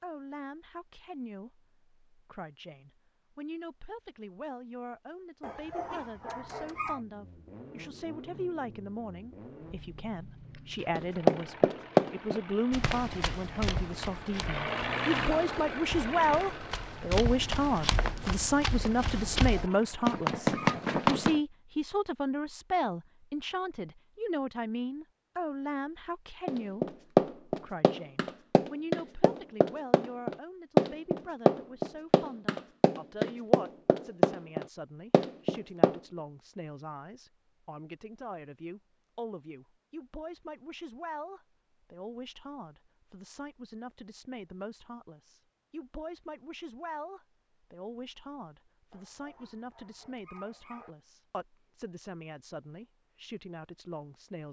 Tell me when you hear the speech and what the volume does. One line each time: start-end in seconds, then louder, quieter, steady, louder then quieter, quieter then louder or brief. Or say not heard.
0.0-54.4 louder then quieter.